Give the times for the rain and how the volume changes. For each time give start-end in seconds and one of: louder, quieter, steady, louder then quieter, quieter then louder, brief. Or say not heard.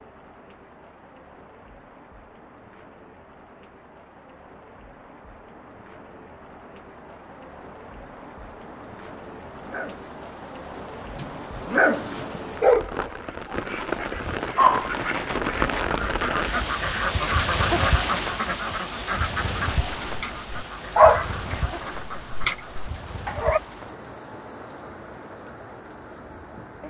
0.0-26.8 louder then quieter.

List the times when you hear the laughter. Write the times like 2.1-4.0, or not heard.
not heard.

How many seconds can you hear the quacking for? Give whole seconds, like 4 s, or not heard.
10 s.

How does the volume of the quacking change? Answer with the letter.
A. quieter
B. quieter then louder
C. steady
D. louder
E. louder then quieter
E.